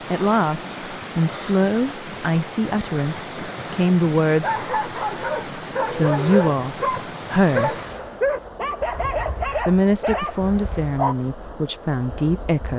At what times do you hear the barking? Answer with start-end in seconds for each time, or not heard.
4.4-11.2.